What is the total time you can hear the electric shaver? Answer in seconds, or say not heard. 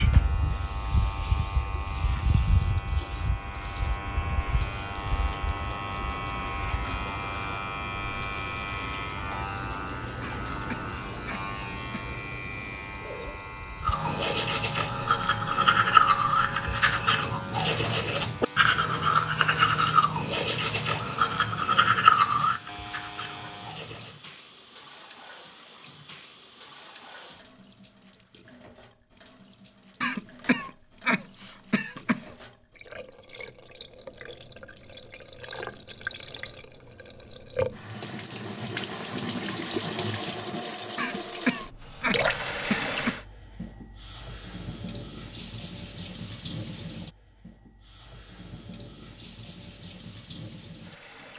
24 s.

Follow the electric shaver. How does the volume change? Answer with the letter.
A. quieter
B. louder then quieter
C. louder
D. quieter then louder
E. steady
A.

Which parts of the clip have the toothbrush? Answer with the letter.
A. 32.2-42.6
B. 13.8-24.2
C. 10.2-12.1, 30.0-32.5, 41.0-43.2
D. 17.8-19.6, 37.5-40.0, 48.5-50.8
B.